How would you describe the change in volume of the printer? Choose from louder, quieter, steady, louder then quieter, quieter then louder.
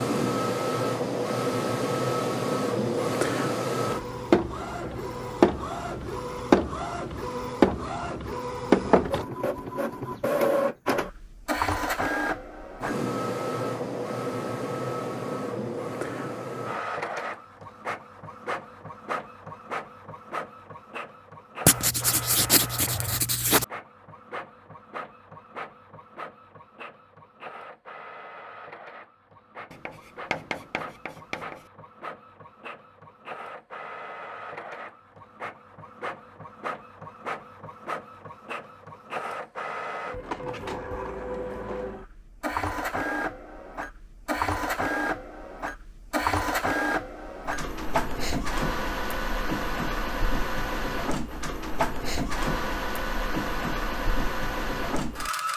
quieter then louder.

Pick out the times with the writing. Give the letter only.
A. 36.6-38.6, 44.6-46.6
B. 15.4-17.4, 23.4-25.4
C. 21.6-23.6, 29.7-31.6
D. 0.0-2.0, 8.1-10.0
C.